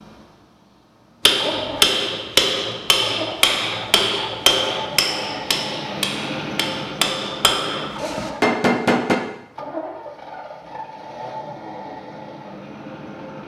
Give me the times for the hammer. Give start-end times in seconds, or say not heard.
1.2-9.2.